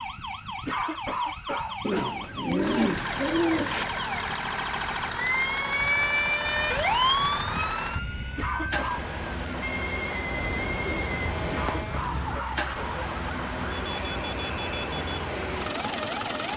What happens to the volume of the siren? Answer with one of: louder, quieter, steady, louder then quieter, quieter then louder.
louder then quieter.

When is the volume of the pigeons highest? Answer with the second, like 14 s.
3 s.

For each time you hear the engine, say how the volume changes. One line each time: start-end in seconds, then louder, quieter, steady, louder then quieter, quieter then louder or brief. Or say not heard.
2.5-16.5 steady.